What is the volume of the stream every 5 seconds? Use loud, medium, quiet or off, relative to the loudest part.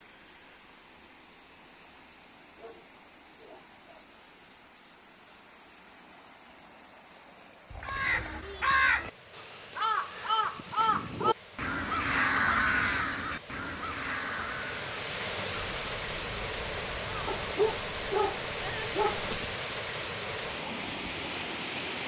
quiet, quiet, medium, loud, loud.